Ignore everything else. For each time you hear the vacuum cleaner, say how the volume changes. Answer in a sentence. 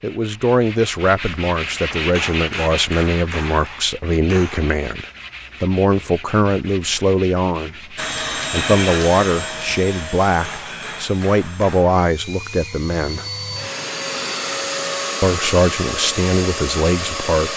You can hear the vacuum cleaner from 8.0 to 17.5 s, getting quieter then louder.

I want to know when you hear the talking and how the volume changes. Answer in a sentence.
You can hear the talking from 0.0 to 13.2 s, at a steady volume; and briefly from 15.2 to 17.5 s.